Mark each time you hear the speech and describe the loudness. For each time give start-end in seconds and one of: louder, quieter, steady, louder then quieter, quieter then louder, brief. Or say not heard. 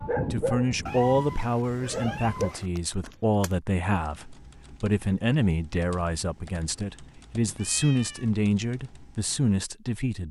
0.3-10.2 steady.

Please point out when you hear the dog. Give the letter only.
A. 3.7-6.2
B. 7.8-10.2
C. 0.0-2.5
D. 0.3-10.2
C.